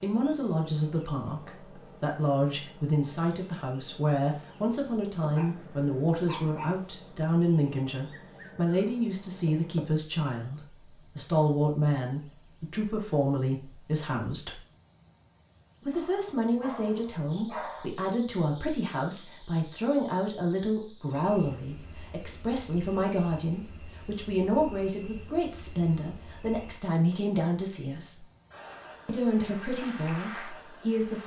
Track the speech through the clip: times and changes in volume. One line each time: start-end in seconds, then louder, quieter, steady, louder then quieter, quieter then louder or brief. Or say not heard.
0.0-14.6 steady
15.8-28.2 steady
29.1-31.2 brief.